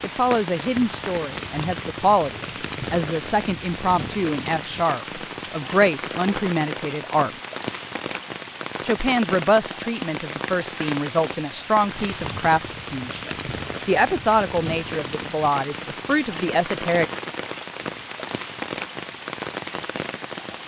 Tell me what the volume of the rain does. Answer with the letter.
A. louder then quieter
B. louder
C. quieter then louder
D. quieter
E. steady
E.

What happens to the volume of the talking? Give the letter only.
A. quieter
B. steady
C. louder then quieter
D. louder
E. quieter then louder
B.